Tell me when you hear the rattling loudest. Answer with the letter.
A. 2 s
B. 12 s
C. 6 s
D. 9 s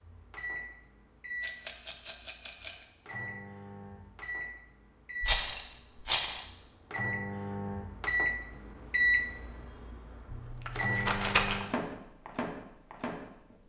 C.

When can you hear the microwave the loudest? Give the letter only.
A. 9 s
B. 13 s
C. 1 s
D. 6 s
A.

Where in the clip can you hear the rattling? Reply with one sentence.
The rattling can be heard from 1.4 to 2.9 s, from 5.2 to 6.4 s and from 10.3 to 11.6 s.